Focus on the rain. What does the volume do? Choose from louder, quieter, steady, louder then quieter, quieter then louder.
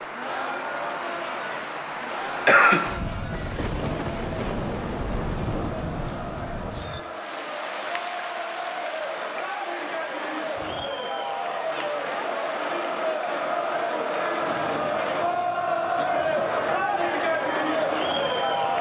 quieter.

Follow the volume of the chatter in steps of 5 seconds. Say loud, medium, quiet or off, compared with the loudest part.
medium, medium, loud, loud.